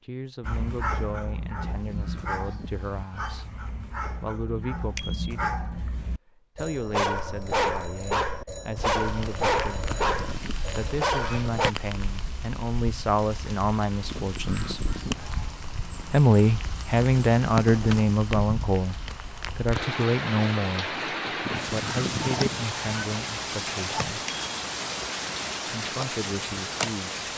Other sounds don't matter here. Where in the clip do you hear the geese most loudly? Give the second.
22 s.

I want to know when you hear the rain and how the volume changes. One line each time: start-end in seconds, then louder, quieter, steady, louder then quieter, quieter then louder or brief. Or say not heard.
8.8-27.3 louder.